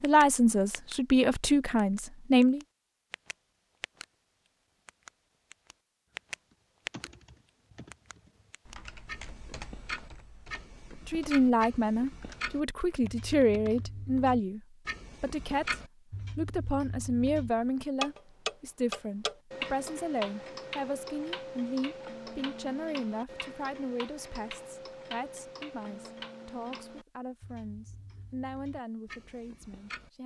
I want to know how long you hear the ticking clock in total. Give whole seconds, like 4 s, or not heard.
28 s.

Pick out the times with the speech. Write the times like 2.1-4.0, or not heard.
0.0-2.6, 11.1-14.6, 15.2-15.8, 16.4-30.2.